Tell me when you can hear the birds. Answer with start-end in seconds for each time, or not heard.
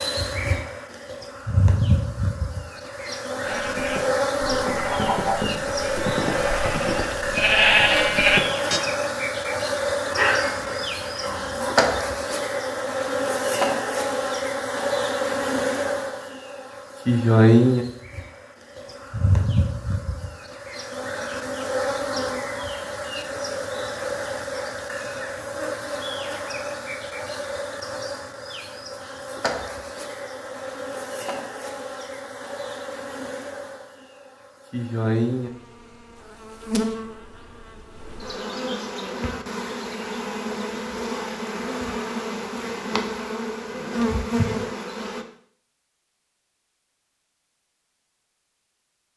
not heard.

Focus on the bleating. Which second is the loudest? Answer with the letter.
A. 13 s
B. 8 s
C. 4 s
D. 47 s
B.